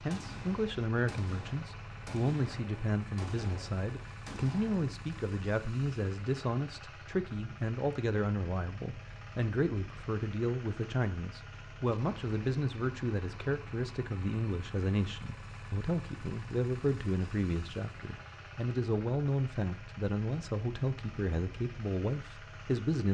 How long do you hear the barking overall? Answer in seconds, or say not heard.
not heard.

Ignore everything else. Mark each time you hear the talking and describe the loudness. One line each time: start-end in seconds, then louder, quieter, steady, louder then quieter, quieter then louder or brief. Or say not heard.
0.0-23.0 steady.